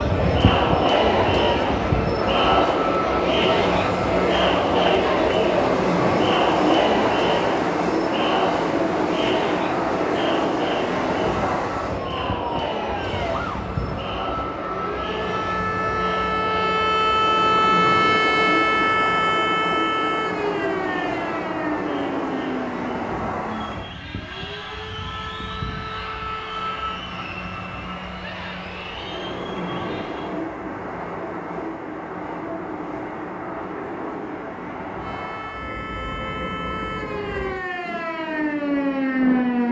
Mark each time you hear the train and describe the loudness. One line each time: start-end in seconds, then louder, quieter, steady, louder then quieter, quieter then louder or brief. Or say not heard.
0.0-39.6 quieter.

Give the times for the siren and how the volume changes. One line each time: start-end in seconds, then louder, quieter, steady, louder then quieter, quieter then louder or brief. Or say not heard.
12.0-27.1 louder then quieter
35.0-39.6 louder.